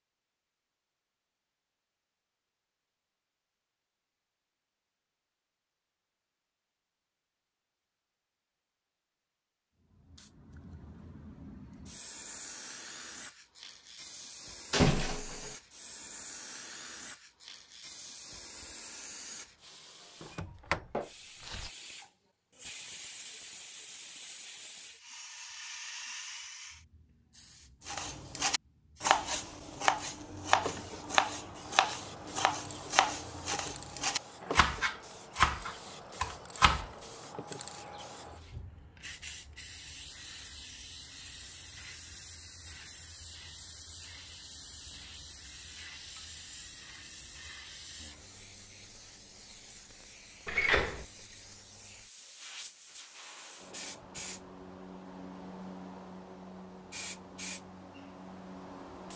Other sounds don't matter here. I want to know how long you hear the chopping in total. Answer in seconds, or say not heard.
9 s.